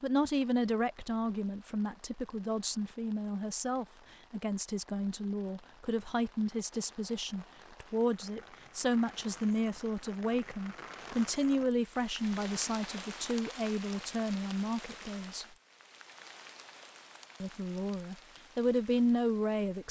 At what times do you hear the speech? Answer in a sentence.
The speech can be heard from 0.0 to 15.4 s and from 17.4 to 19.8 s.